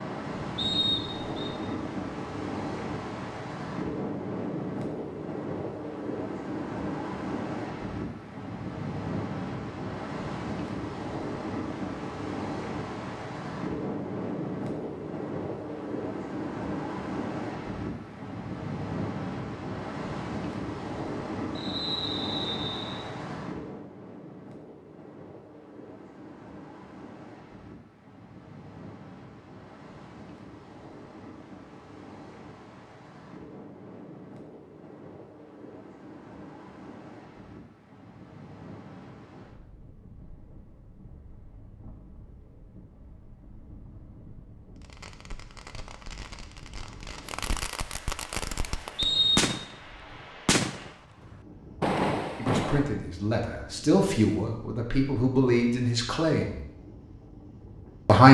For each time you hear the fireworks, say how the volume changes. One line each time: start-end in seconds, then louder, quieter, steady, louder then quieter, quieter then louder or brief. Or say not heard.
44.8-49.8 louder
50.5-53.0 brief.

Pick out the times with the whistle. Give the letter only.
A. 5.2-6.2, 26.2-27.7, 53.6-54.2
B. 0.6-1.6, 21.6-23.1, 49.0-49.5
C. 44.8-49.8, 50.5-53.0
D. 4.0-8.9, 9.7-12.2
B.